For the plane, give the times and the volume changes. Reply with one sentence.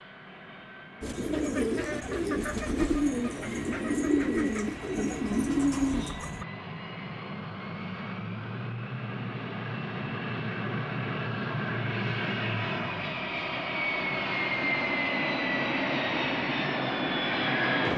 The plane can be heard from 0.0 to 17.9 s, getting louder.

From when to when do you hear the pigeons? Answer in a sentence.
The pigeons can be heard from 1.0 to 6.5 s.